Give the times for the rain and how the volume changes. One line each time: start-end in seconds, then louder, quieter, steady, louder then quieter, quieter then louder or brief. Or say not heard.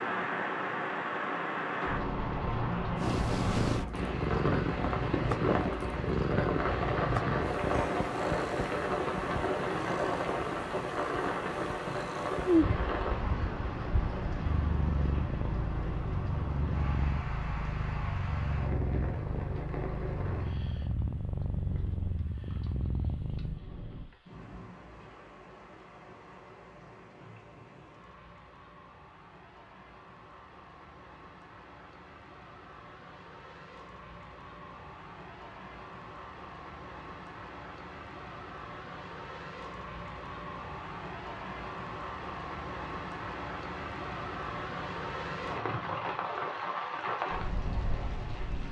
0.0-48.6 quieter then louder.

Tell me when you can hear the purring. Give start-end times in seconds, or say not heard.
3.0-23.6.